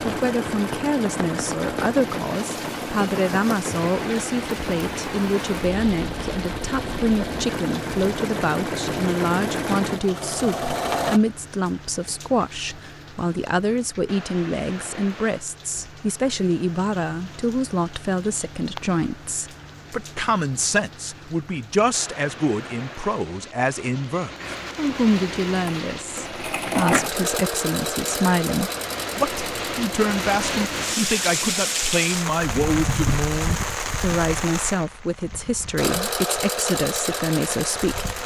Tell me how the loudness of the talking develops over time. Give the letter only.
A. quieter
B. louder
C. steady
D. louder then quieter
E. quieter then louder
C.